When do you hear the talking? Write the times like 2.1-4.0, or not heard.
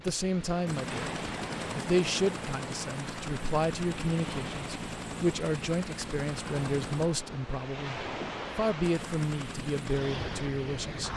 0.0-1.1, 1.8-11.1.